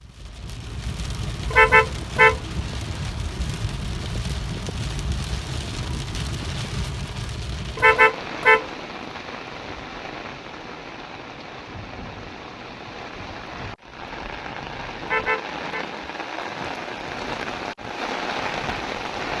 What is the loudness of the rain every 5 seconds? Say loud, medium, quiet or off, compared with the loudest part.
loud, loud, medium, loud.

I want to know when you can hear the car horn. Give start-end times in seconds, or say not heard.
1.5-2.4, 7.8-8.7, 15.1-15.8.